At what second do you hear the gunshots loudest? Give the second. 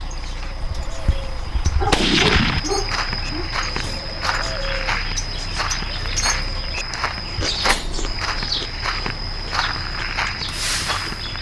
2 s.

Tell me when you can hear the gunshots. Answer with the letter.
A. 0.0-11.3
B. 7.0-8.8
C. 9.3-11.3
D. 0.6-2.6
D.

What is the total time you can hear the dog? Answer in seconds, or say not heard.
2 s.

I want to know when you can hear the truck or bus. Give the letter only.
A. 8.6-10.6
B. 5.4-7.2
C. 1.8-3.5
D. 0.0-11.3
D.